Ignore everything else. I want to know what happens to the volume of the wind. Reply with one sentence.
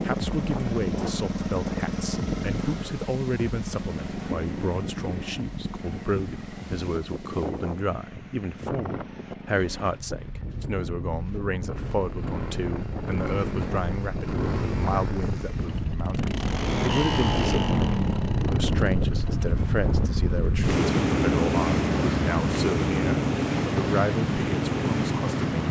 The loudness of the wind goes up.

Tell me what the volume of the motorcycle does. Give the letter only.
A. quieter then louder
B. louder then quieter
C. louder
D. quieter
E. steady
A.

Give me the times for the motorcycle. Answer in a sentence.
You can hear the motorcycle from 0.0 to 25.6 s.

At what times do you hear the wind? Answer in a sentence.
You can hear the wind from 0.0 to 25.6 s.